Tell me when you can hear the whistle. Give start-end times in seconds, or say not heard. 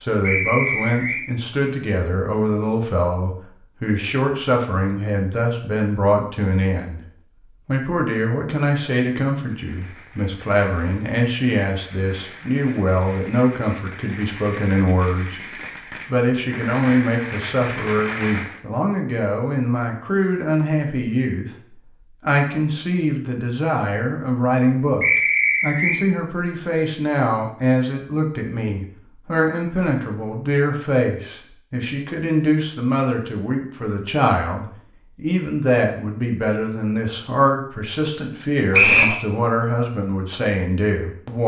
0.2-1.2, 25.0-26.0, 38.7-39.1.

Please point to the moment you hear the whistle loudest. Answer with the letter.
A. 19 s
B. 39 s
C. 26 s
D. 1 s
B.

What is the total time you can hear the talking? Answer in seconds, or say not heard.
40 s.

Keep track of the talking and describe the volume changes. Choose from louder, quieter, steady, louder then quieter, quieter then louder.
steady.